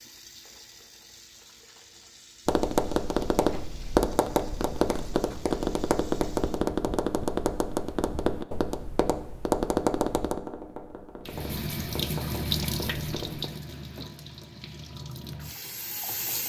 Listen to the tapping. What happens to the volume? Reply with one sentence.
The volume of the tapping goes down.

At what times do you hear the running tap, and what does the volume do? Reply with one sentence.
The running tap can be heard from 0.0 to 6.7 s, at a steady volume; and from 11.2 to 16.4 s, getting quieter.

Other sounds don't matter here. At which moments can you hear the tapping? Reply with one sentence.
You can hear the tapping from 2.5 to 13.5 s.